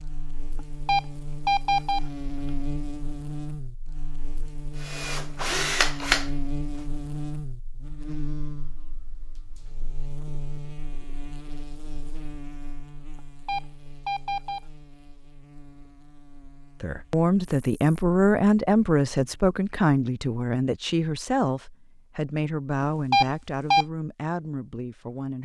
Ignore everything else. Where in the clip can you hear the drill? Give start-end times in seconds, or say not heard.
4.8-6.3.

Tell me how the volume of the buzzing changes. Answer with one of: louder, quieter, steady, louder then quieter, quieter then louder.
quieter.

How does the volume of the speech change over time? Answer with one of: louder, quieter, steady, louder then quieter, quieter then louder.
quieter.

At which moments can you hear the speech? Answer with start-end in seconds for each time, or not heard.
16.8-25.4.